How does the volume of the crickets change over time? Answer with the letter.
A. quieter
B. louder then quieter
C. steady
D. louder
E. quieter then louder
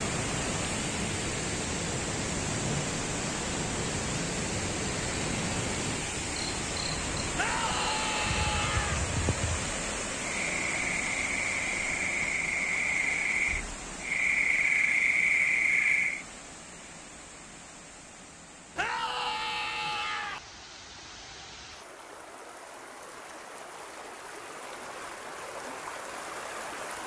D.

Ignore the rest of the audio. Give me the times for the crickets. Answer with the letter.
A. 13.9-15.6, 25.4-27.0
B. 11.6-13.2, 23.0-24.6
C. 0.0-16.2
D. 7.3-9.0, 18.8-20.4
C.